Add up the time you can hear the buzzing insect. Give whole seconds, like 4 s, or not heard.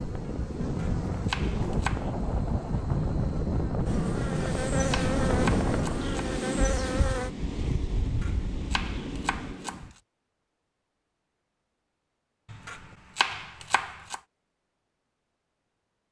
7 s.